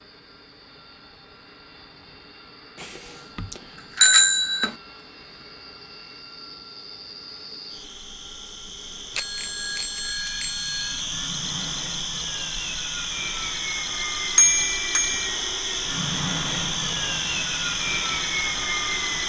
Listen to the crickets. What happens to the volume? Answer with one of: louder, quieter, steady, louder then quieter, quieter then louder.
louder.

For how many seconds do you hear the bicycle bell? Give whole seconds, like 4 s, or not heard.
5 s.